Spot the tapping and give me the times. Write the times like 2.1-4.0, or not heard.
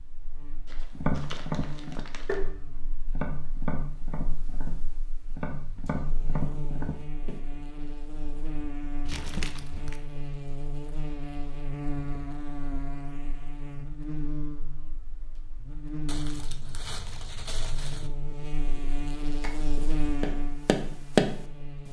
0.9-7.4, 19.4-21.4.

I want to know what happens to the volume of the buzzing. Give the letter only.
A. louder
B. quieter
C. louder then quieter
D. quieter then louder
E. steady
A.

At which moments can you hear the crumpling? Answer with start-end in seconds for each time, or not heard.
0.7-2.4, 9.1-10.0, 16.1-18.1.